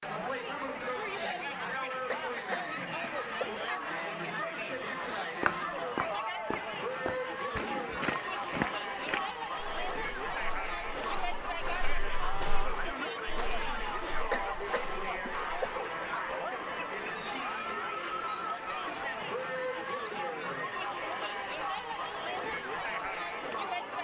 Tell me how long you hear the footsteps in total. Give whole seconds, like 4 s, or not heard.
10 s.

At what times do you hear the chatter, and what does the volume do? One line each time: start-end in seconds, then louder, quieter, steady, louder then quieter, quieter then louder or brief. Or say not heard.
0.0-24.0 steady.